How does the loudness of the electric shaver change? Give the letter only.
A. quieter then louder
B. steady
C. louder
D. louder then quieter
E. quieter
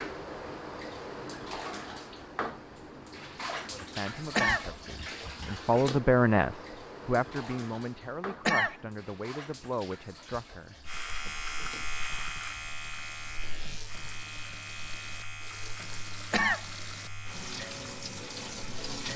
E.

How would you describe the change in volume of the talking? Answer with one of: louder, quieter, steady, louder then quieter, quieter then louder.
louder then quieter.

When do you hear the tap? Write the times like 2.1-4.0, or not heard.
0.0-19.1.